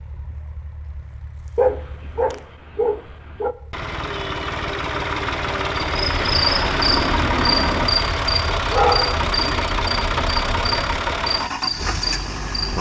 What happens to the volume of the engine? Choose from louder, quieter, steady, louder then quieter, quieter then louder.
louder.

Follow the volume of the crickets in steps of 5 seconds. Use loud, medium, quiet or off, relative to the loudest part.
off, loud, loud.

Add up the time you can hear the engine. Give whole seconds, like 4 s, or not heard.
13 s.